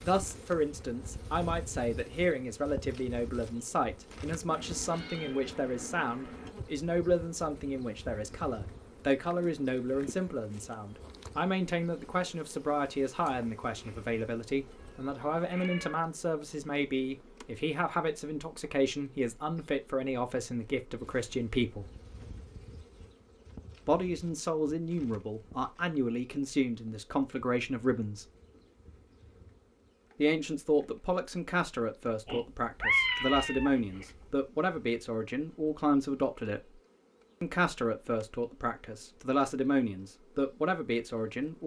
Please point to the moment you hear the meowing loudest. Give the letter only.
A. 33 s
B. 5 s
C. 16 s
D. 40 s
A.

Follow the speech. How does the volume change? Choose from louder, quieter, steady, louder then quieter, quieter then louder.
steady.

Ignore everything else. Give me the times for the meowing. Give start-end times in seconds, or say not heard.
4.5-6.5, 14.8-16.1, 32.2-34.2.